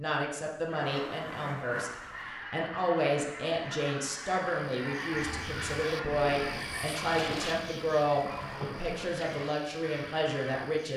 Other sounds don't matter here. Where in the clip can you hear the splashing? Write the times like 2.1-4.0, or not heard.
0.8-2.4, 8.2-9.1.